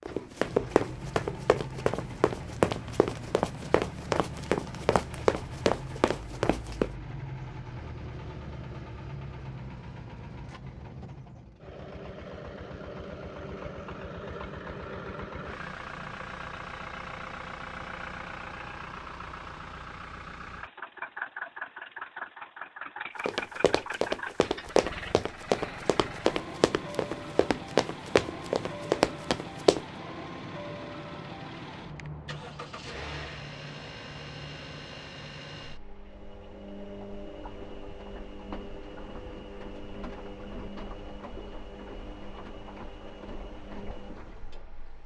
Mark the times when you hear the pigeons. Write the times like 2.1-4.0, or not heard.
not heard.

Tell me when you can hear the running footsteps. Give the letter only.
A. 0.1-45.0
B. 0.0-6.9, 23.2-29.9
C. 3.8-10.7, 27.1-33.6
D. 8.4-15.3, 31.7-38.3
B.